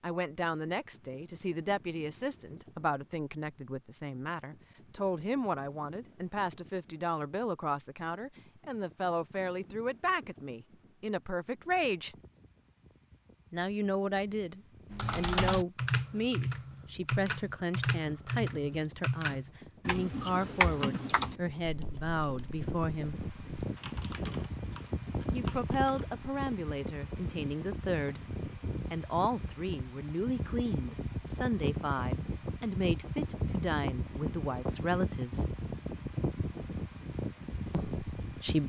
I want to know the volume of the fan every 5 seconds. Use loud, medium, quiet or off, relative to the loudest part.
quiet, quiet, quiet, quiet, loud, loud, loud, loud.